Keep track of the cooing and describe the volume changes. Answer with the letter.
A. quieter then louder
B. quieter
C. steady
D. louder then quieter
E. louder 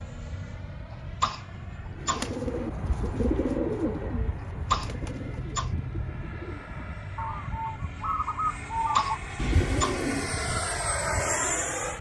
A.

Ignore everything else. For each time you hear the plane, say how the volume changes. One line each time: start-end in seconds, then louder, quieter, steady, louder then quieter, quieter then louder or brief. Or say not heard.
0.0-11.9 louder.